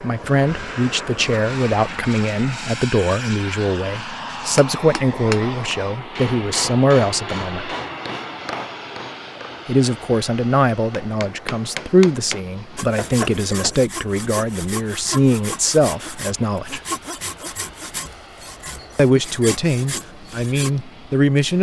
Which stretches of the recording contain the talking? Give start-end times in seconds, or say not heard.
0.0-7.7, 9.7-16.8, 18.9-21.5.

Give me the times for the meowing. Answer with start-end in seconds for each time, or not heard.
not heard.